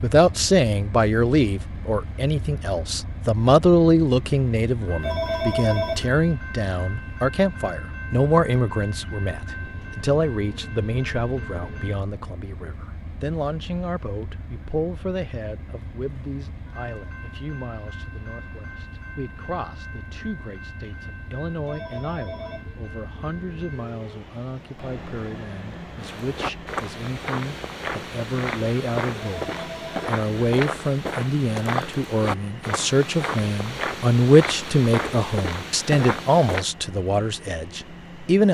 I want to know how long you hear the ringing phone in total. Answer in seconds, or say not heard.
3 s.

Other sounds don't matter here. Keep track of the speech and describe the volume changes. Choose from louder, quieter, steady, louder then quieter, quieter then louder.
quieter then louder.